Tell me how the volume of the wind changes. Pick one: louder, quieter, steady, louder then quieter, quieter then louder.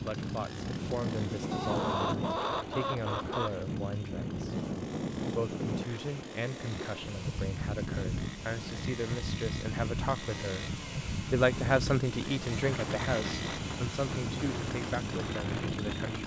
steady.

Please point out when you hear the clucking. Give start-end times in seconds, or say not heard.
1.5-3.5.